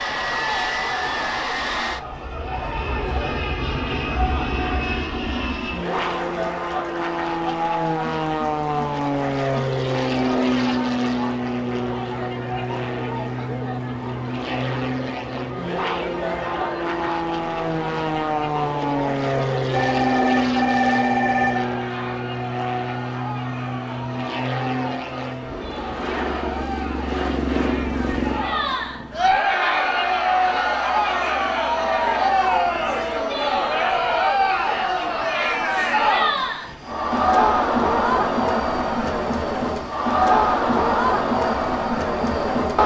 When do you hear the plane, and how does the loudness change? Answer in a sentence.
You can hear the plane from 0.0 to 42.6 s, getting quieter.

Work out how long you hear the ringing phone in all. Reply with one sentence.
You can hear the ringing phone for 2 seconds altogether.